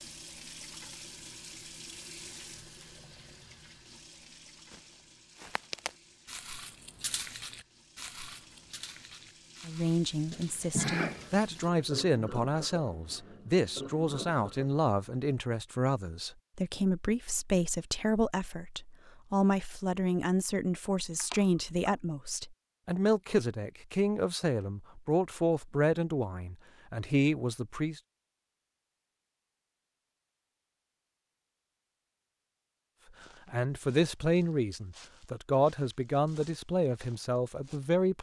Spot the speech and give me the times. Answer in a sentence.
You can hear the speech from 9.7 to 28.0 s and from 33.5 to 38.1 s.